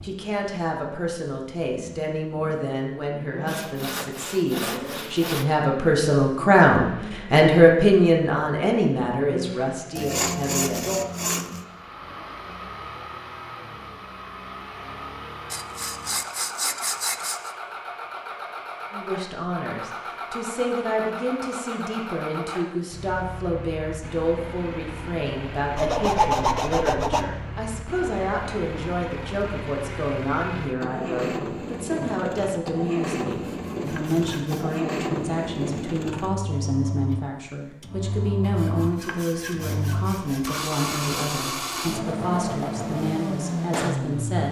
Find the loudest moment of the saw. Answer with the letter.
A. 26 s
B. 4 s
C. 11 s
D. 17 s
A.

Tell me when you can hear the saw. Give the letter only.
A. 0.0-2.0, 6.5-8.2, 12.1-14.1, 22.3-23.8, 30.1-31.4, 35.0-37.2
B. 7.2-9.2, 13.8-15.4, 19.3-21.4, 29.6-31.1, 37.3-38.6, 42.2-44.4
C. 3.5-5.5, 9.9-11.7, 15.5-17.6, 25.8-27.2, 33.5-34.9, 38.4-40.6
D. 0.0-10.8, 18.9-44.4
C.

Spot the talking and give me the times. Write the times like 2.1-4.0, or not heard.
0.0-10.8, 18.9-44.4.